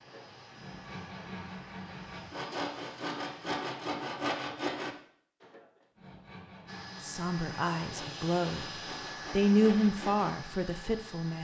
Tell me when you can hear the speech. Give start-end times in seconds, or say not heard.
7.0-8.7, 9.3-11.3.